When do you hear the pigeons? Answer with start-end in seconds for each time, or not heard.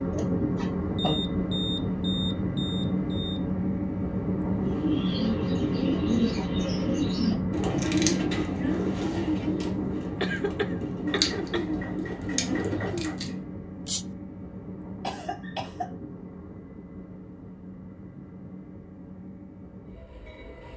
4.8-13.4.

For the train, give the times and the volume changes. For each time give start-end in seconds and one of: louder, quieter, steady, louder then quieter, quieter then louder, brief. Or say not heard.
0.0-20.7 quieter.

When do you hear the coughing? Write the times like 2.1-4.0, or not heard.
0.1-1.2, 10.2-11.7, 15.0-15.9.